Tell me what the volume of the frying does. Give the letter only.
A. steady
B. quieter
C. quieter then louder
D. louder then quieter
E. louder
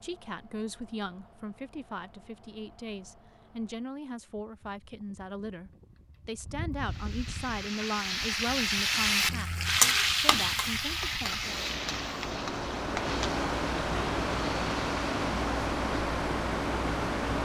D.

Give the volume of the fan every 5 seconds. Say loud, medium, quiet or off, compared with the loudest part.
quiet, quiet, loud, loud.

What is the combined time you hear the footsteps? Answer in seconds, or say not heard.
not heard.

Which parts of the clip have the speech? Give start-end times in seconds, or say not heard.
0.0-11.6.